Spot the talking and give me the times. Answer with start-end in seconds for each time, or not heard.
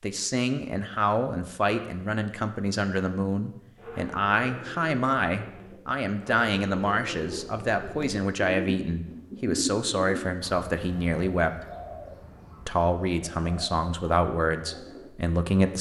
0.0-11.6, 12.7-15.7.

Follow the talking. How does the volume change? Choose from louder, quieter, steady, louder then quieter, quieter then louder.
steady.